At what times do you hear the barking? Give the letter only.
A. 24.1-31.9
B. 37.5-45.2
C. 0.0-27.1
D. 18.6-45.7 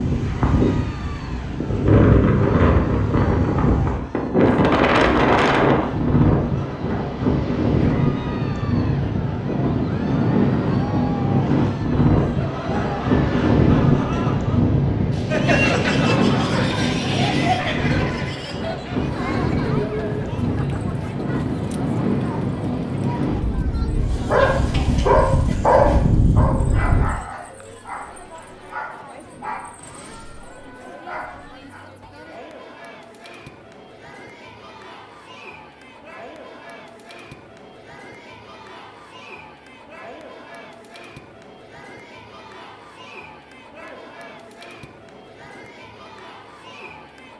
A.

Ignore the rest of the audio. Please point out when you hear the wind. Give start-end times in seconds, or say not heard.
0.0-27.1.